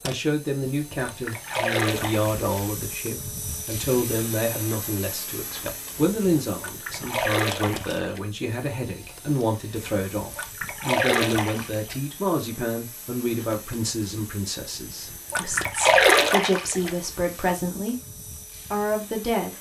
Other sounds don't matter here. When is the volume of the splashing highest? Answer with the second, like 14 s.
16 s.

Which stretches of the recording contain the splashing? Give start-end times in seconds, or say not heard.
0.9-2.5, 6.5-8.2, 10.3-11.9, 15.3-16.9.